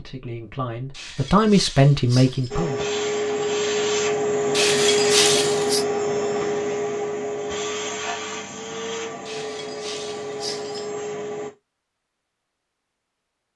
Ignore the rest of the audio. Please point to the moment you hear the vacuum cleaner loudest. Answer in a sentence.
The volume of the vacuum cleaner peaks at 5 seconds.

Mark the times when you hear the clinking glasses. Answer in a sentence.
The clinking glasses can be heard from 0.9 to 2.5 s, from 4.5 to 5.8 s and from 9.2 to 10.9 s.